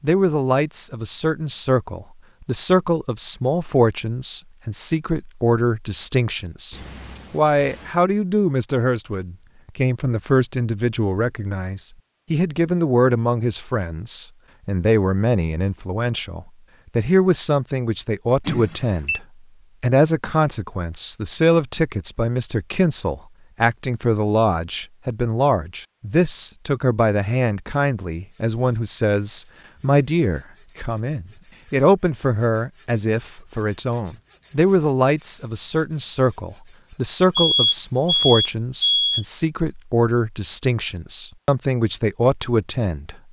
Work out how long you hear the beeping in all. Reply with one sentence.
The beeping can be heard for 4 seconds in total.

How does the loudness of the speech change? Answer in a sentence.
The loudness of the speech stays about the same.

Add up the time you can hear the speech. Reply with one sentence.
You can hear the speech for 43 seconds altogether.